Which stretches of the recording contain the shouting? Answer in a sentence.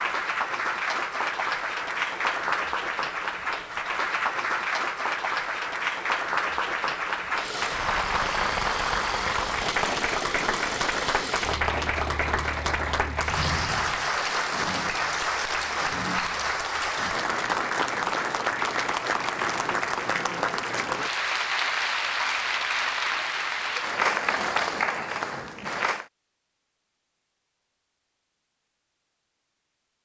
You can't hear the shouting here.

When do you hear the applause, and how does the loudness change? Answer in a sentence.
The applause can be heard from 0.0 to 26.1 s, at a steady volume.